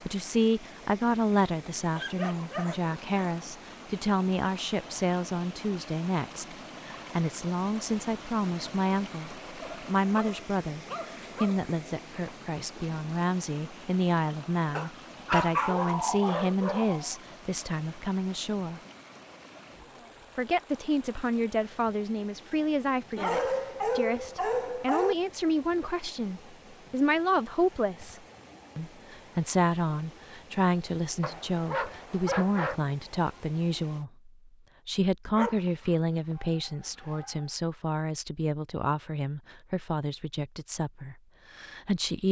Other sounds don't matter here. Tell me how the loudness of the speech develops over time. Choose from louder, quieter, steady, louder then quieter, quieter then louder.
steady.